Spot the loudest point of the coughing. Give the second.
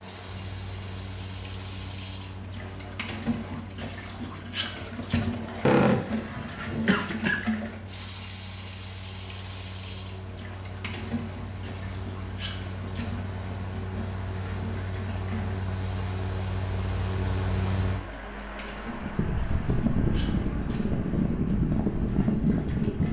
6 s.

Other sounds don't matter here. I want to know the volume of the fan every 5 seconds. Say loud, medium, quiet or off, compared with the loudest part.
quiet, quiet, quiet, medium, loud.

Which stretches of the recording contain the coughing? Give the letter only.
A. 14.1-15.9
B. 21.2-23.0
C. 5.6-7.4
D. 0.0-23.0
C.